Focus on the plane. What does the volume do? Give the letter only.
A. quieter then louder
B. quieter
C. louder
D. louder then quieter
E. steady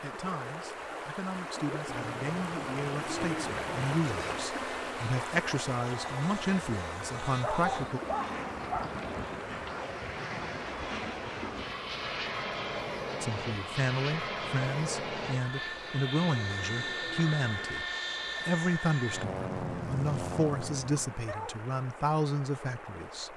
C.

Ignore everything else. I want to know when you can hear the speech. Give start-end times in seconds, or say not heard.
0.0-8.0, 13.2-23.3.